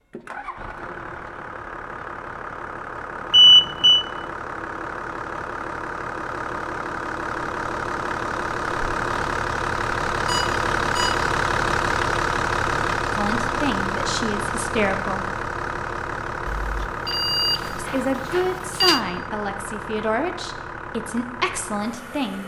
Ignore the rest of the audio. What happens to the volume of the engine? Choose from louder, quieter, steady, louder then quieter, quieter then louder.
louder then quieter.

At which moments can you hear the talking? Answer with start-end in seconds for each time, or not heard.
13.2-15.2, 17.8-22.4.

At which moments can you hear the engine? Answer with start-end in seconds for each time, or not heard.
0.1-22.4.